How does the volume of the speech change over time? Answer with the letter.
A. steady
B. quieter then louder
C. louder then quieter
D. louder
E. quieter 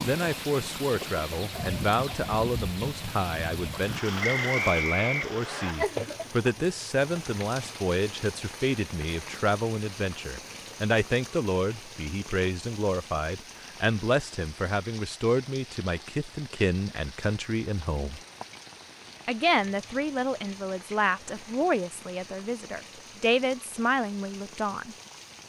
A.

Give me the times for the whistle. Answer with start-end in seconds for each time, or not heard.
4.2-5.8.